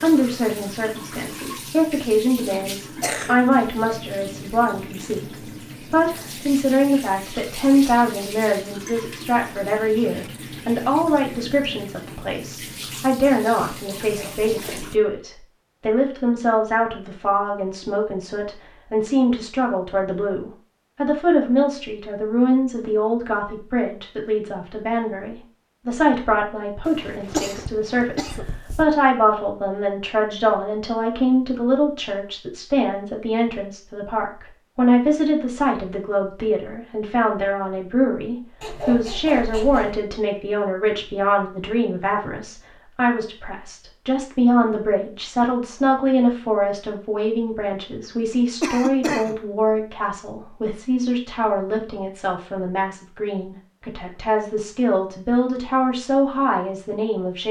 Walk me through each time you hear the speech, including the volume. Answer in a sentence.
You can hear the speech from 0.0 to 57.4 s, at a steady volume.